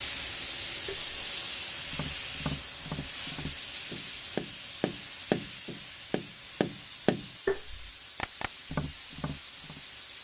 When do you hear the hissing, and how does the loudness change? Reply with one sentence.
You can hear the hissing from 0.0 to 10.2 s, getting quieter.